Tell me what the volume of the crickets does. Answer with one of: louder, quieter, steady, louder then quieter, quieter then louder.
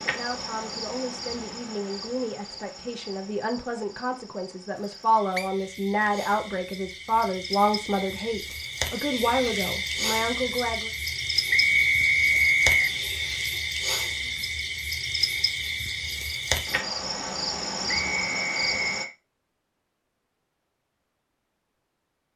louder.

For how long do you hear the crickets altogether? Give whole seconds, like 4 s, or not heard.
19 s.